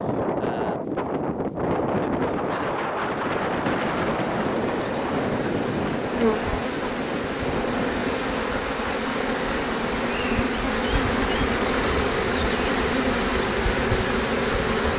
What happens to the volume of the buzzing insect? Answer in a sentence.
The volume of the buzzing insect goes up.